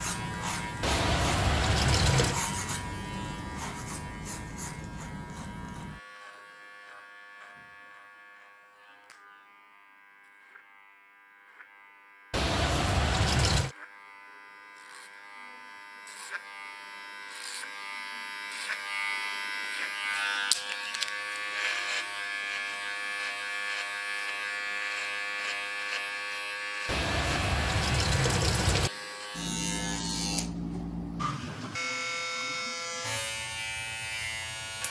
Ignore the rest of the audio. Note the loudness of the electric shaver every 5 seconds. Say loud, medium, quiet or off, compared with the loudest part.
loud, quiet, quiet, medium, loud, loud, loud.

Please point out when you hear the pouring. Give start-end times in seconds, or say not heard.
0.8-2.4, 12.3-13.8, 26.9-28.9.